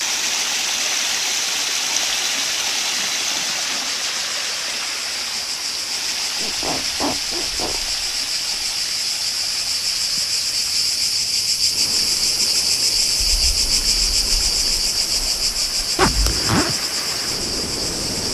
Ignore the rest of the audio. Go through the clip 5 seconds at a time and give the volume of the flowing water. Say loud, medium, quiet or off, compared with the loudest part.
loud, medium, quiet, medium.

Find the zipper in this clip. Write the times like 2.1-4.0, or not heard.
3.0-3.9, 6.3-7.8, 15.9-16.8.